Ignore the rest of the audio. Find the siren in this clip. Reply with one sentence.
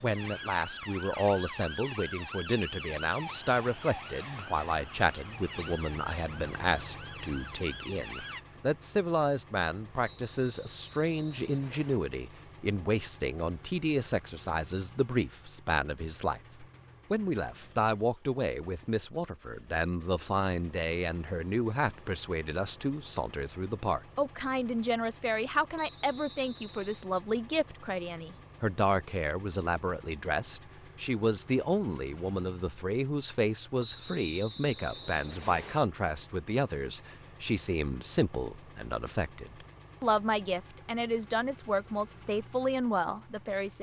You can hear the siren from 0.0 to 8.4 s.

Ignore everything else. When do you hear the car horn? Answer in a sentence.
The car horn can't be heard in this clip.